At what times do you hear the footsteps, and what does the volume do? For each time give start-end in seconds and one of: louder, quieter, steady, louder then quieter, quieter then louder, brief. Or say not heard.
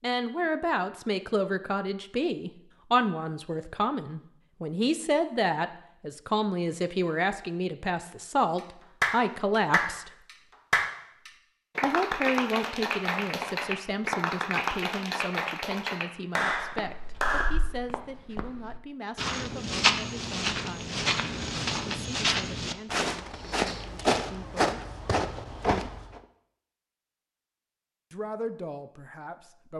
16.5-26.2 louder.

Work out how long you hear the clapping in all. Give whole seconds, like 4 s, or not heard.
9 s.